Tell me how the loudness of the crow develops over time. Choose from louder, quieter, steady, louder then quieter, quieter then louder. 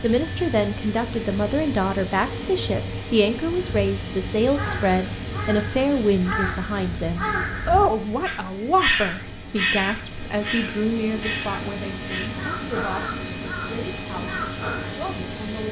louder then quieter.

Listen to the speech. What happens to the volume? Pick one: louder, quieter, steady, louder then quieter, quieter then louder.
quieter.